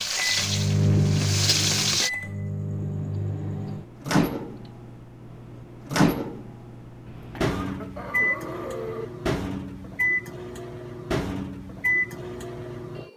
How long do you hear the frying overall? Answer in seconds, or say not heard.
2 s.